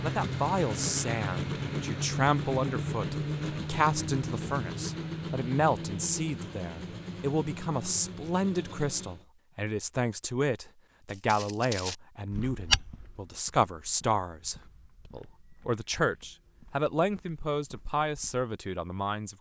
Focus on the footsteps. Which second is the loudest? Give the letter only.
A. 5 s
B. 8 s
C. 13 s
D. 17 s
C.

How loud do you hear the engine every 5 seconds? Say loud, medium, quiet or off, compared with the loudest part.
loud, medium, off, off.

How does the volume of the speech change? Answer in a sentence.
The loudness of the speech stays about the same.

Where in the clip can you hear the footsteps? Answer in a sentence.
You can hear the footsteps from 11.1 to 18.4 s.